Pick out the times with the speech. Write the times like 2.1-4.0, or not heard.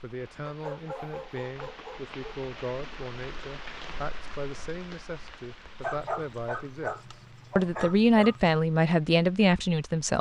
0.0-7.0, 7.5-10.1.